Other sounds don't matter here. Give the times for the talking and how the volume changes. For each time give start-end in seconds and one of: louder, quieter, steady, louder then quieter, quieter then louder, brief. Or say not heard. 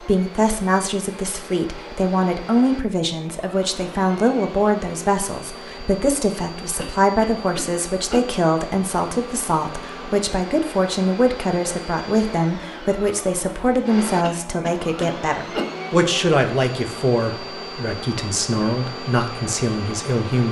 0.1-20.4 steady.